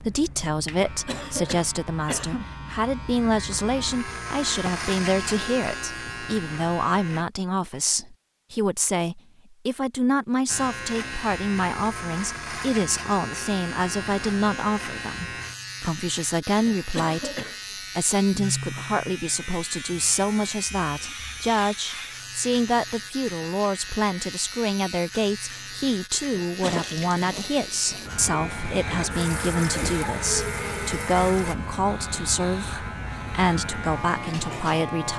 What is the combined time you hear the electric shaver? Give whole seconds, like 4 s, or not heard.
32 s.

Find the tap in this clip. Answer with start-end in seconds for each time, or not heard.
26.6-31.6.